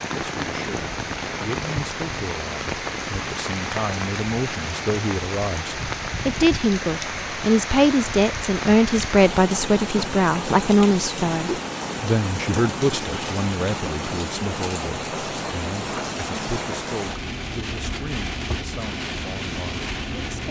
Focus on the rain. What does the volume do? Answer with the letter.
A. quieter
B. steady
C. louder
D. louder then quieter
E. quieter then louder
B.